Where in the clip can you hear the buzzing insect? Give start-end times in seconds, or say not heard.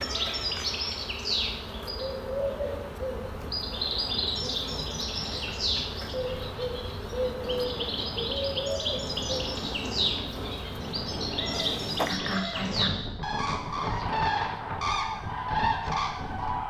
0.0-12.2.